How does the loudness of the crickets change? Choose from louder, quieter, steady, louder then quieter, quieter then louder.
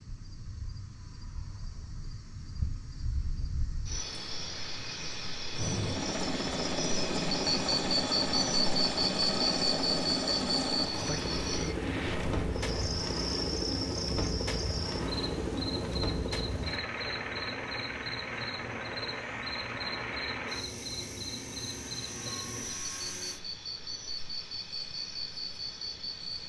louder then quieter.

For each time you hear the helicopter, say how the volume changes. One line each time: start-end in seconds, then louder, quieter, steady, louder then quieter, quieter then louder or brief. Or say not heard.
5.5-23.4 quieter.